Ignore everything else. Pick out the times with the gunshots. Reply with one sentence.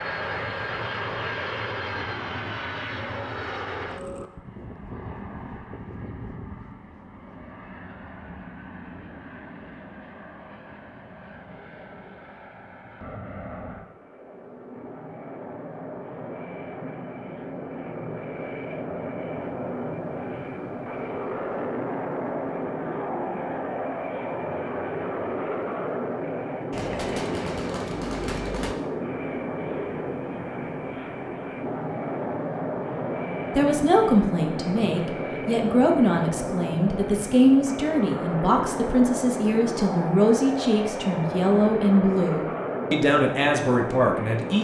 You can hear the gunshots from 26.7 to 28.8 s.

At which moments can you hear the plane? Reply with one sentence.
The plane can be heard from 0.0 to 44.5 s.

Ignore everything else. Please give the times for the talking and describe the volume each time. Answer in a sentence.
The talking can be heard from 33.5 to 44.5 s, at a steady volume.